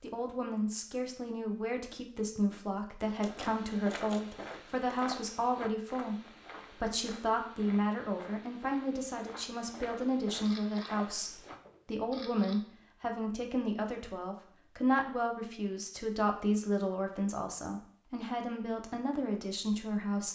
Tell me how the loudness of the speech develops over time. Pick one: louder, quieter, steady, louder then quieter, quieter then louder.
steady.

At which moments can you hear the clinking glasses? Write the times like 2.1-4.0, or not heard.
not heard.